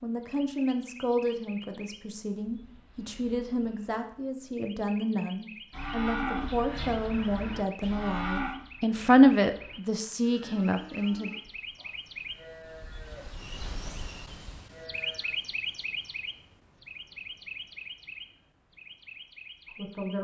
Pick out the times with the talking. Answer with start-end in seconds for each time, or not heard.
0.0-11.3, 19.7-20.1.